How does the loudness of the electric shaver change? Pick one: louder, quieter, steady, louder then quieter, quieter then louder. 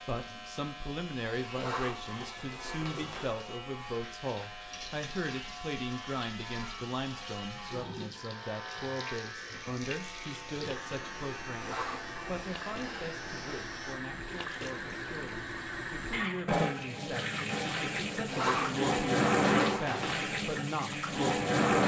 steady.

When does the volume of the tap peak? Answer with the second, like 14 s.
19 s.